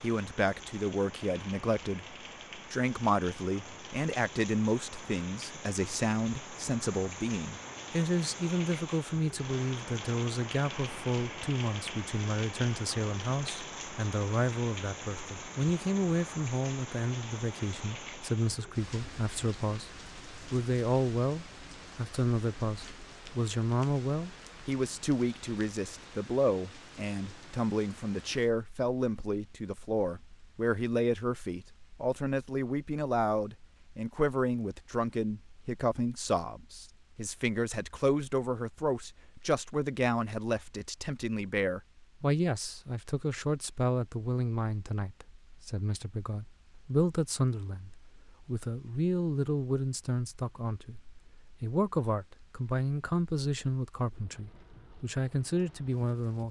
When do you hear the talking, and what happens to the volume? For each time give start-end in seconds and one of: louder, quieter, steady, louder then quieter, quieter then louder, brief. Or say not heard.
0.0-56.4 steady.